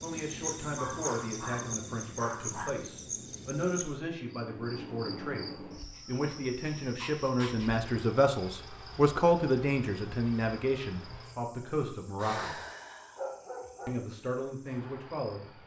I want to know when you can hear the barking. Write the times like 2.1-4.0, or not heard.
0.8-2.8, 5.8-7.7, 12.2-13.9.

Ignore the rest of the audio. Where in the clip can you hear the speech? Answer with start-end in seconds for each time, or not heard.
0.0-12.6, 13.8-15.5.